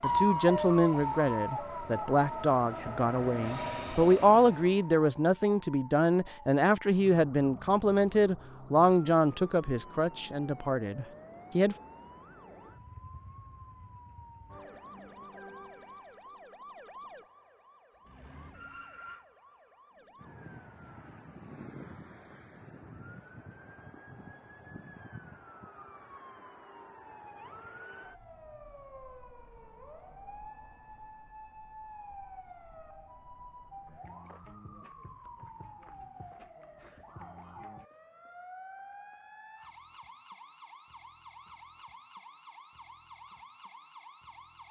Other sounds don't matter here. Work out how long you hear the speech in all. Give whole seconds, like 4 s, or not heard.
12 s.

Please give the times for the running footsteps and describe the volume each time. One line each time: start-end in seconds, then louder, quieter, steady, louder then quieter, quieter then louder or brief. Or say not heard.
not heard.